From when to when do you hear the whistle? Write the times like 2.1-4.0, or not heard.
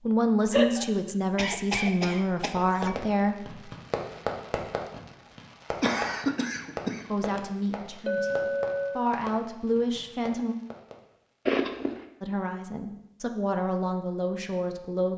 not heard.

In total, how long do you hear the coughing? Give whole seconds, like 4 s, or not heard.
4 s.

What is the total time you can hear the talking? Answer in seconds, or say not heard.
10 s.